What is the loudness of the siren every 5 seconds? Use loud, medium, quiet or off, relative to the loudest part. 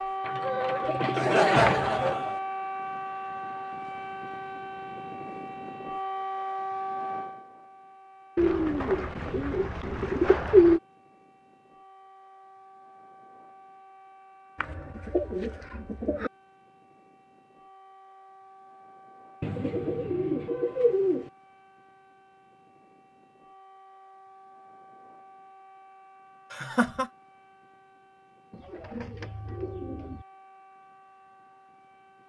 loud, loud, quiet, quiet, quiet, quiet, quiet.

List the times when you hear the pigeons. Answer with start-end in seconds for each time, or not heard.
0.2-2.1, 8.3-10.8, 14.6-16.3, 19.4-21.3, 28.5-30.2.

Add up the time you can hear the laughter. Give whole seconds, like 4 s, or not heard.
2 s.